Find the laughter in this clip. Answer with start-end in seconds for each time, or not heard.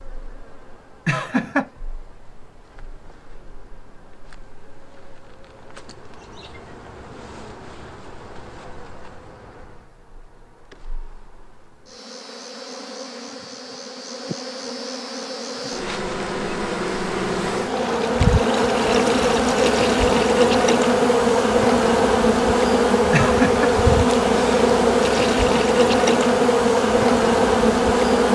1.1-1.7, 23.1-23.7.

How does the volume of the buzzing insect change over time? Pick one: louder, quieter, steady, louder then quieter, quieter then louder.
louder.